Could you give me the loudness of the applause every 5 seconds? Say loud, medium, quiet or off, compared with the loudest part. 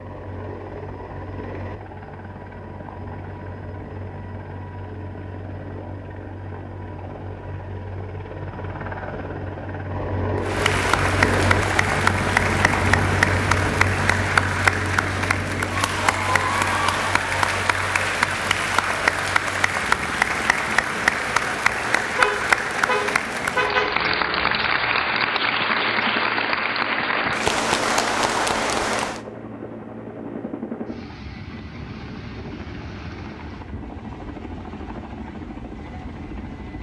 off, off, loud, loud, loud, loud, off, off.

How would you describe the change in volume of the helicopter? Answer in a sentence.
The loudness of the helicopter goes up, then down.